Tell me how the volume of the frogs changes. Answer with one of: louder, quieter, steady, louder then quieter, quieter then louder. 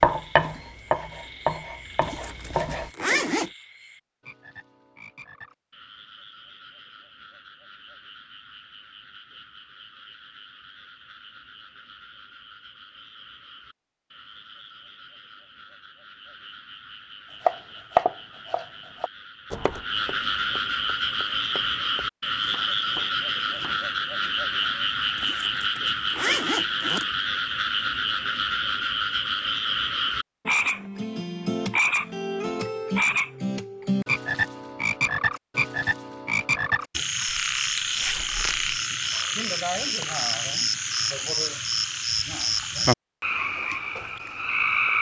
louder.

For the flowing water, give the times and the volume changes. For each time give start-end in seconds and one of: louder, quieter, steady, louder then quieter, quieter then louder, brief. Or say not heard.
not heard.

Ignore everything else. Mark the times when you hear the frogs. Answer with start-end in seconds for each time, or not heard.
0.0-44.9.